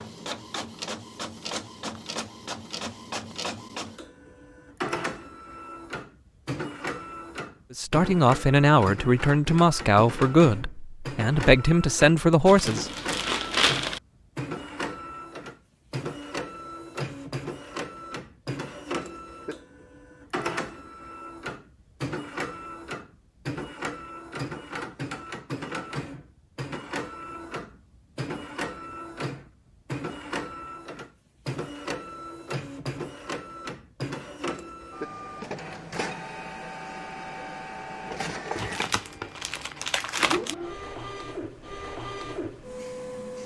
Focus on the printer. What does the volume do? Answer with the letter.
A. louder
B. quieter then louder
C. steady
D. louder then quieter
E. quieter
C.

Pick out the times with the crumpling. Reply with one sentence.
You can hear the crumpling from 12.4 to 14.0 s and from 38.5 to 40.5 s.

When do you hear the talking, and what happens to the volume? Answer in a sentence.
You can hear the talking from 7.8 to 12.9 s, at a steady volume.